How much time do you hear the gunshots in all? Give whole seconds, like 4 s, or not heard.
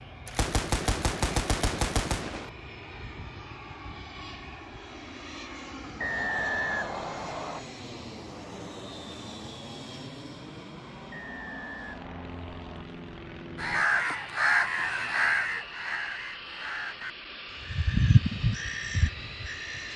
2 s.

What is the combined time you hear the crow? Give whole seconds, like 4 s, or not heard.
6 s.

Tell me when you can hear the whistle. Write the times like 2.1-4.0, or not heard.
6.0-7.7, 11.1-12.8.